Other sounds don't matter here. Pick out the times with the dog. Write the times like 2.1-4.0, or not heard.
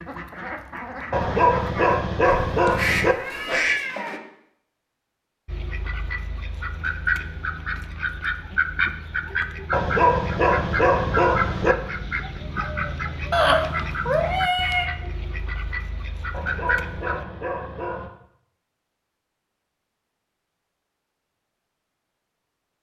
1.1-3.1, 9.7-11.8, 16.3-18.1.